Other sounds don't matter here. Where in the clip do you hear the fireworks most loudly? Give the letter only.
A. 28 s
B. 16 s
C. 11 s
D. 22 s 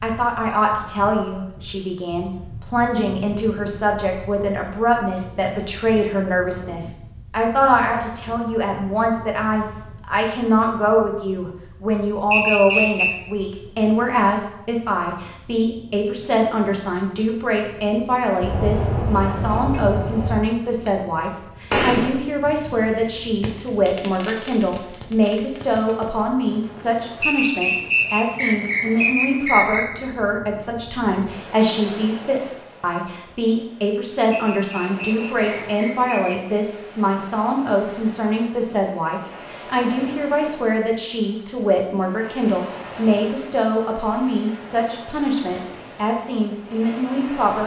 D.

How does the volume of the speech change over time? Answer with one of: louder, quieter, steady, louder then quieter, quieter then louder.
steady.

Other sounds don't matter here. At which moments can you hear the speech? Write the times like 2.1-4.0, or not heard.
0.0-47.6.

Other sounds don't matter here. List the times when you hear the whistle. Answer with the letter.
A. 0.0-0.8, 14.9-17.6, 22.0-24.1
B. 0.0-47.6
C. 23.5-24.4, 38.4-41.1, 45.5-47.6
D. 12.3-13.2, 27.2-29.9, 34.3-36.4
D.